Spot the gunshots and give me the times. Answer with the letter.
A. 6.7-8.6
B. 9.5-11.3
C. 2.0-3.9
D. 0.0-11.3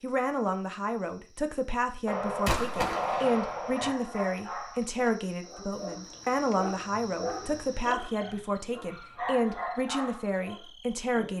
C.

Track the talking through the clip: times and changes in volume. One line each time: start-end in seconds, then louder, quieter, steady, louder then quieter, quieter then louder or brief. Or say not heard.
0.0-11.3 steady.